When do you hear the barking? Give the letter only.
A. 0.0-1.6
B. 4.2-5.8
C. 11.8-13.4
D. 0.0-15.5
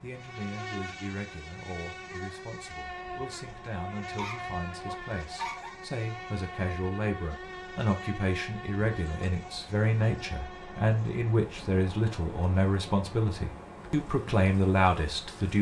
B.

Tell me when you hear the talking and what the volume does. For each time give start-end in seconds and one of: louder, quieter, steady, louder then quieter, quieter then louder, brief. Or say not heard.
0.0-15.5 louder.